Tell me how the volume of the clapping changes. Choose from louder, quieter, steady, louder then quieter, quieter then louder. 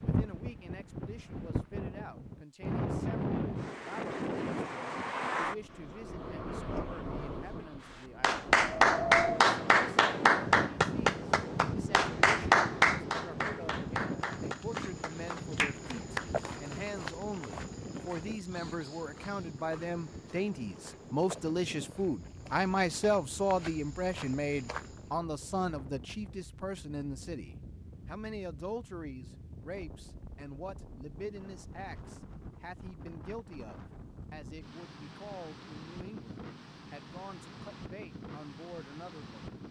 quieter.